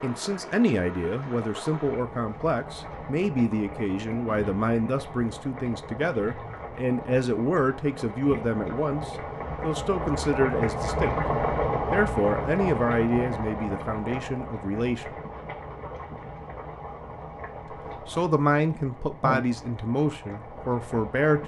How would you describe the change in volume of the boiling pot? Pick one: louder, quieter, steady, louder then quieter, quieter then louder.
louder then quieter.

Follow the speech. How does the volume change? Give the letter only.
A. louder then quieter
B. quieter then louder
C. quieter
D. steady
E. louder
D.